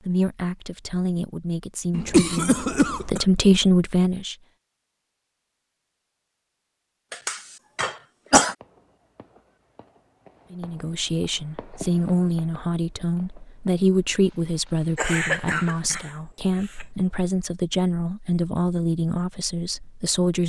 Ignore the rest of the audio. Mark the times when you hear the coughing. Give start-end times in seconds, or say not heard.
1.9-3.2, 7.1-8.6, 14.9-16.9.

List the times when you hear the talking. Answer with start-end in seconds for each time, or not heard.
0.0-4.3, 10.5-20.4.